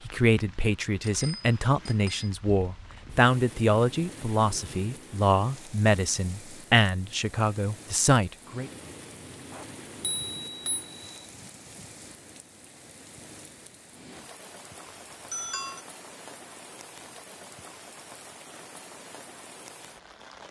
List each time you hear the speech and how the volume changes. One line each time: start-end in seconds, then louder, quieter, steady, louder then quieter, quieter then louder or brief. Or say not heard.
0.1-8.7 steady.